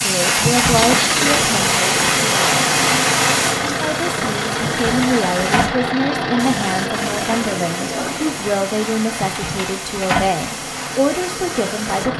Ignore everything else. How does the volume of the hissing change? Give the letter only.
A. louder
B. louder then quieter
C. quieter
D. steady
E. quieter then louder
C.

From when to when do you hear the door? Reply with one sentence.
You can hear the door from 0.3 to 0.9 s, from 4.8 to 5.8 s and from 9.2 to 10.4 s.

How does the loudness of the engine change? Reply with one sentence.
The loudness of the engine goes down.